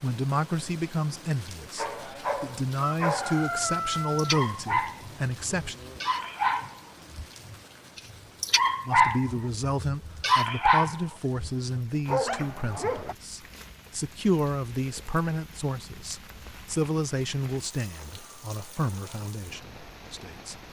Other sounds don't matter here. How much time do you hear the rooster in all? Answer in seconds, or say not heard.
2 s.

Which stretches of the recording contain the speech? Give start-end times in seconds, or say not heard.
0.0-5.8, 8.8-20.6.